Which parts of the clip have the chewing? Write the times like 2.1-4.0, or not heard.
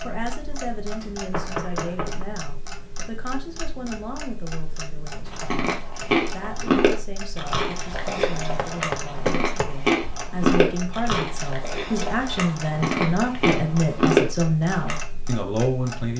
5.3-15.0.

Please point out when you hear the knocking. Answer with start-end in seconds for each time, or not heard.
1.3-2.2, 8.2-9.7.